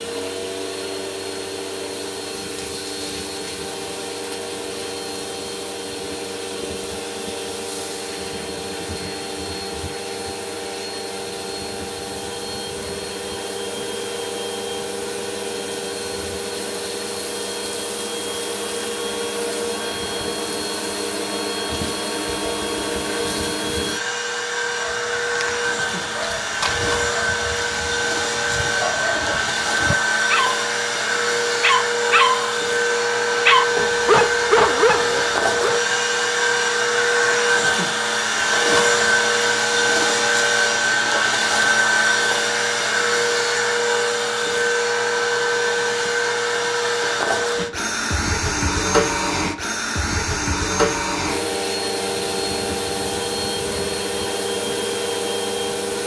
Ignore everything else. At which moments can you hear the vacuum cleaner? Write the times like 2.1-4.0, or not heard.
0.0-56.0.